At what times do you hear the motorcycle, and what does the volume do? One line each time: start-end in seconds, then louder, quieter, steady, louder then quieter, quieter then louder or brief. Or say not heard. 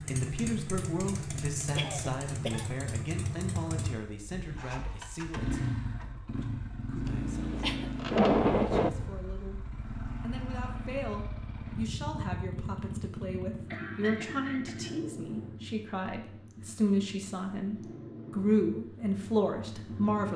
0.0-20.3 quieter.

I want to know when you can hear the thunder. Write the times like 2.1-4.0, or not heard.
7.0-8.9.